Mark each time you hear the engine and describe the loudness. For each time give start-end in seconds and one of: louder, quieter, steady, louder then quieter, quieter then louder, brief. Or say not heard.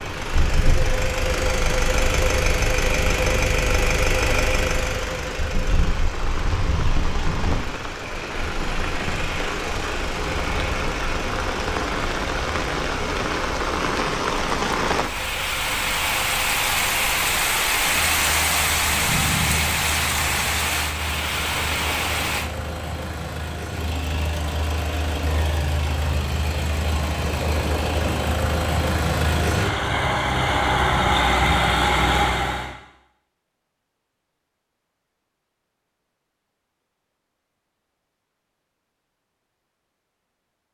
0.0-32.7 quieter then louder.